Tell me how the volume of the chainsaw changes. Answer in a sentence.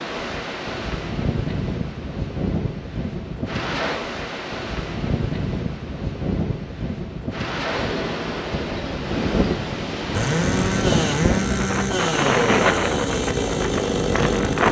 The loudness of the chainsaw stays about the same.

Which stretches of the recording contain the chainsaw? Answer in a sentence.
The chainsaw can be heard from 10.1 to 14.6 s.